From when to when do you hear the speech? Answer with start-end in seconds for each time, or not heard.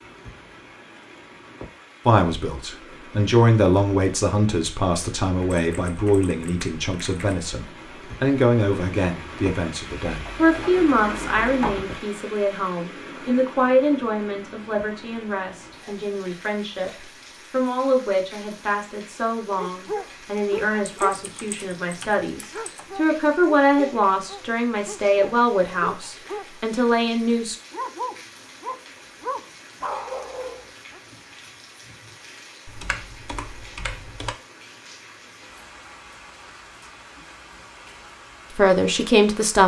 2.0-27.6, 38.5-39.6.